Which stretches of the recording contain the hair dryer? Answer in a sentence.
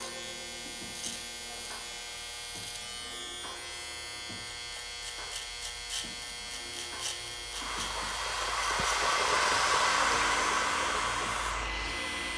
You can hear the hair dryer from 7.5 to 12.3 s.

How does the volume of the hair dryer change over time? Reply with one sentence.
The loudness of the hair dryer goes up, then down.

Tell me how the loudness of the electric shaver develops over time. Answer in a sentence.
The loudness of the electric shaver stays about the same.